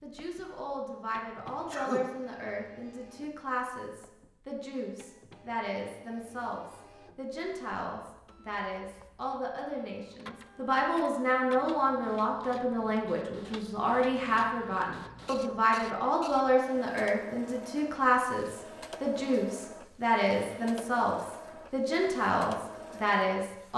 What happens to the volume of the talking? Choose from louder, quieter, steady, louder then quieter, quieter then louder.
louder.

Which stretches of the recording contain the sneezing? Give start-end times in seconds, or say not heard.
1.4-2.0.